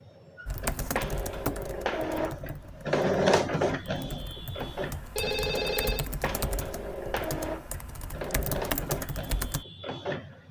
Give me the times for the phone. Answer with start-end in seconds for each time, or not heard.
5.2-6.0.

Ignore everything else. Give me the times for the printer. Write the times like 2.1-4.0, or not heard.
0.0-10.4.